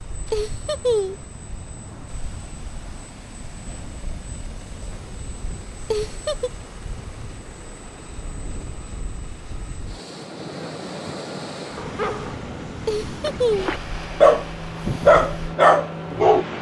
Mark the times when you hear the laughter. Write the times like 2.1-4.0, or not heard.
0.3-1.2, 5.9-6.5, 12.8-13.8.